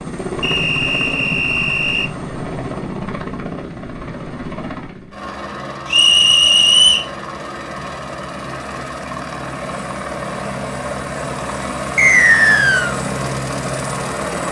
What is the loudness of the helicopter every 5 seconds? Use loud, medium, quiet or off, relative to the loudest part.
loud, medium, loud.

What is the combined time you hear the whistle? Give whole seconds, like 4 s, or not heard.
4 s.